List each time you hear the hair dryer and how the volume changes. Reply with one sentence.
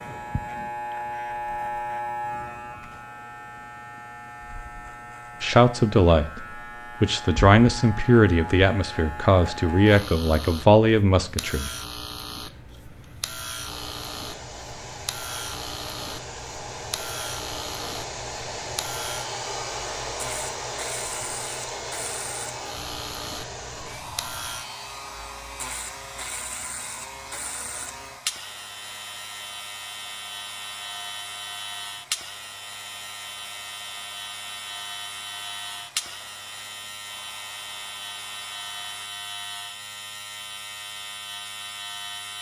The hair dryer can be heard from 13.7 to 39.1 s, getting quieter.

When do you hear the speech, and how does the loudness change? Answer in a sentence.
The speech can be heard from 5.4 to 11.7 s, at a steady volume.